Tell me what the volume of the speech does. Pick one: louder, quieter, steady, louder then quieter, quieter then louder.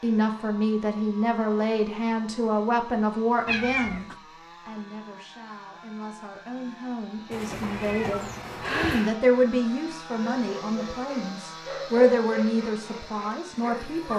quieter then louder.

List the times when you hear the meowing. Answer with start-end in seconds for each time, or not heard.
3.5-4.2, 7.3-9.2.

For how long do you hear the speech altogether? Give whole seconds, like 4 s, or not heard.
14 s.